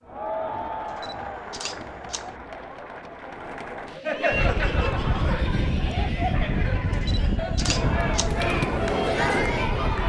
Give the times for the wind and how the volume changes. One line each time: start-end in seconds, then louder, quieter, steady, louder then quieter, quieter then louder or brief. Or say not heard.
4.3-10.0 quieter.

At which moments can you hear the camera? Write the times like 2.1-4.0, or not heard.
0.8-2.3, 6.9-8.3.